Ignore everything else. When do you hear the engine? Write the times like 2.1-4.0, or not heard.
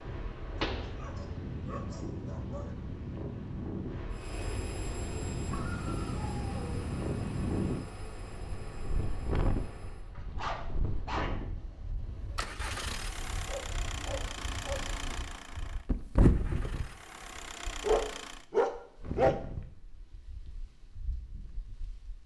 4.1-10.2, 12.2-18.4.